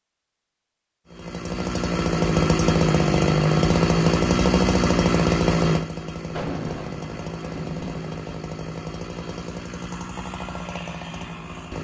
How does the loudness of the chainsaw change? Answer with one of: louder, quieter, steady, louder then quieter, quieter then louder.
quieter.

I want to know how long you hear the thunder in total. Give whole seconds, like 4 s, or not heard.
2 s.